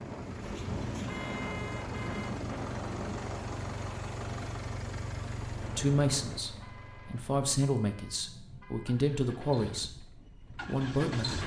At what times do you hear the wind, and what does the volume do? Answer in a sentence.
You can hear the wind from 0.0 to 6.5 s, getting quieter.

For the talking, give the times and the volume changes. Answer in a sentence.
The talking can be heard from 5.6 to 10.1 s, getting quieter then louder; and briefly from 10.7 to 11.4 s.